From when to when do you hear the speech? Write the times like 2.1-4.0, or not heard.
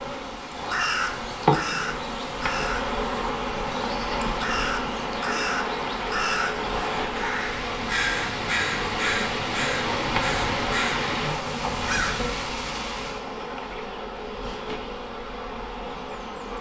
not heard.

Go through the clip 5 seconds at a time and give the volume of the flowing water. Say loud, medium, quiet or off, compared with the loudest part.
medium, loud, loud, off.